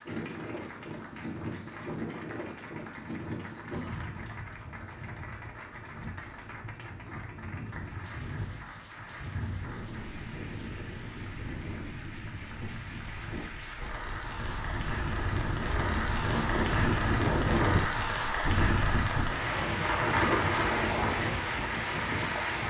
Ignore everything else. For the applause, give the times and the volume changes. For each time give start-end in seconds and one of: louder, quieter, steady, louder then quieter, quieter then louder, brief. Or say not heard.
0.0-22.6 louder.